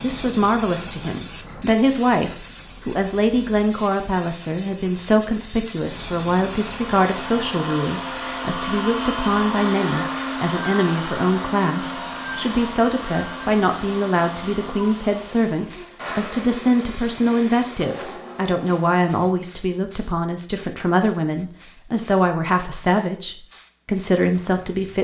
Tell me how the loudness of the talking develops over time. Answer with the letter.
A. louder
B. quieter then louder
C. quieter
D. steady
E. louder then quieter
D.